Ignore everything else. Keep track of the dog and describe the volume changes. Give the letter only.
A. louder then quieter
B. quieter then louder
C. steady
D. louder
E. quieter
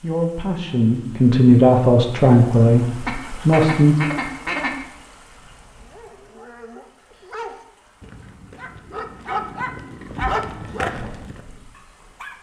D.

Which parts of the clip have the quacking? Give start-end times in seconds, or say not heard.
3.0-4.8.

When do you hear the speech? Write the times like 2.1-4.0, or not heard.
0.0-4.0.